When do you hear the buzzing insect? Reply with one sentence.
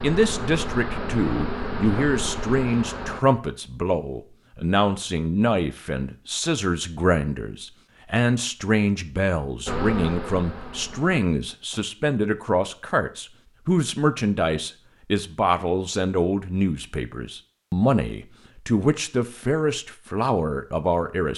The buzzing insect can be heard from 0.0 to 3.2 s and from 9.7 to 11.2 s.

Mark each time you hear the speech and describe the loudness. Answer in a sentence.
You can hear the speech from 0.0 to 21.3 s, at a steady volume.